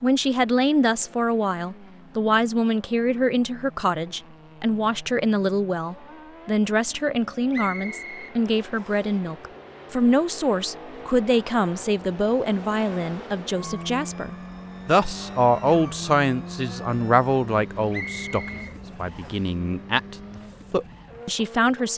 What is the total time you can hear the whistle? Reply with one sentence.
You can hear the whistle for 3 seconds altogether.